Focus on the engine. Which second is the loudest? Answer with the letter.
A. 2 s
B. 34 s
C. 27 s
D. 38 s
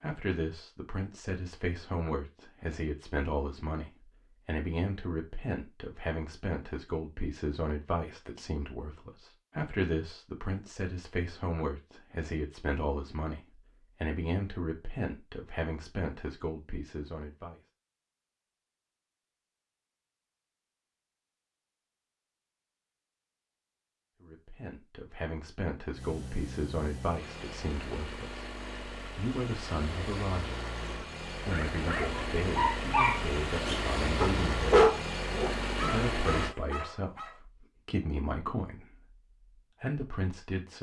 B.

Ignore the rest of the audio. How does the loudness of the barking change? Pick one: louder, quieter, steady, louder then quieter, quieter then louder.
louder then quieter.